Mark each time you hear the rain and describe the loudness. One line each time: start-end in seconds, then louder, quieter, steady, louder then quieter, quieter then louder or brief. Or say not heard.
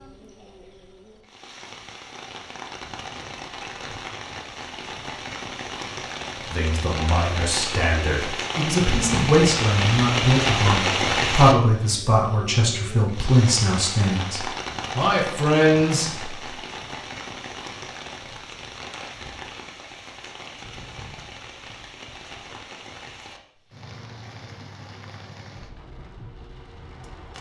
0.0-27.3 louder then quieter.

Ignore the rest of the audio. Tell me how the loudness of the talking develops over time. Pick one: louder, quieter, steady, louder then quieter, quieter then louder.
louder.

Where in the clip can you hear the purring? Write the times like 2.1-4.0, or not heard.
not heard.